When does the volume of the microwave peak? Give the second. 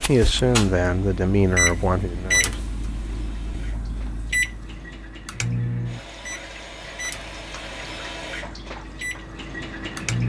2 s.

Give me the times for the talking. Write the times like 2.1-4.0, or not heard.
0.1-2.6.